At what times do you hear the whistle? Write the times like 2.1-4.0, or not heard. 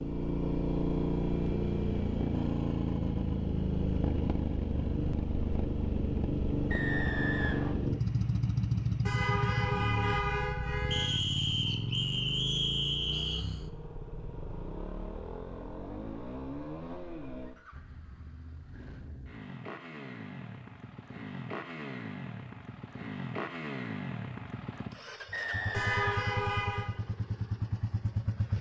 6.7-7.8, 10.9-13.4, 25.3-26.2.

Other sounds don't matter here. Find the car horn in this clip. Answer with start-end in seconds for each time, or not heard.
9.1-11.1, 25.7-26.9.